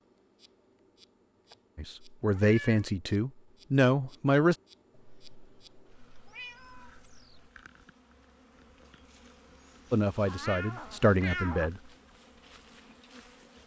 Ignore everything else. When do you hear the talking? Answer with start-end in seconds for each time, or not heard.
1.8-4.5, 9.9-11.8.